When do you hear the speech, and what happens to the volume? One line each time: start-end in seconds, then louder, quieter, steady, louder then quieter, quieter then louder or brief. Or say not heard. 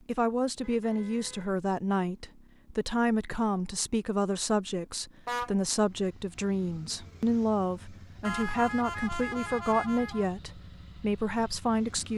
0.1-12.1 steady.